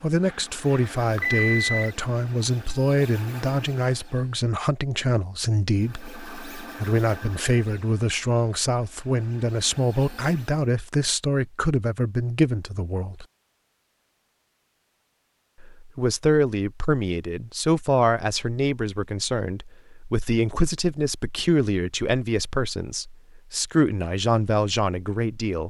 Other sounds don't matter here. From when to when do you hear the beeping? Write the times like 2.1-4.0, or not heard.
0.2-1.9.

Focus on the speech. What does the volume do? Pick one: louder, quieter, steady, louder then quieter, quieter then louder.
steady.